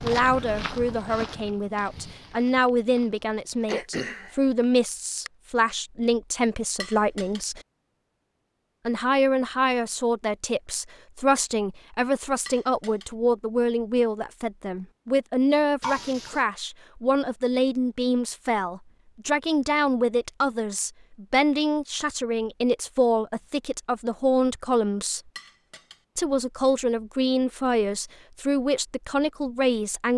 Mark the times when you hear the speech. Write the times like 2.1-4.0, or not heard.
0.0-7.6, 8.8-25.2, 26.1-30.1.